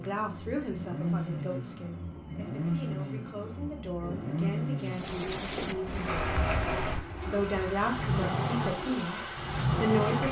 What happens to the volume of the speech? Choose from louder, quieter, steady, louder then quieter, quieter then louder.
quieter then louder.